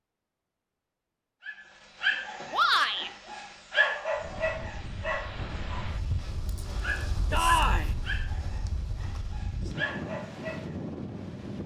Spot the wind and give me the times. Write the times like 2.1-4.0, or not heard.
4.1-11.6.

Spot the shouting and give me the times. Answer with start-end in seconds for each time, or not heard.
2.5-3.1, 7.3-7.9.